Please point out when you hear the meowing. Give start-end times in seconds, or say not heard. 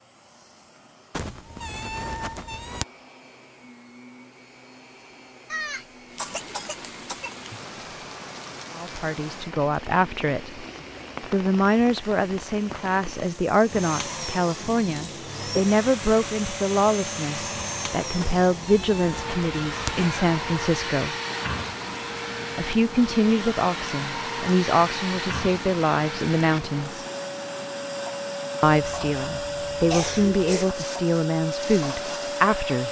1.1-2.9, 18.2-20.2.